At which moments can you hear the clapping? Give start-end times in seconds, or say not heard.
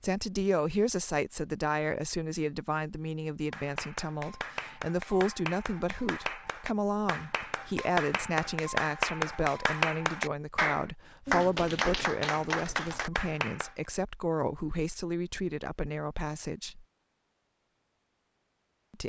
3.5-13.8.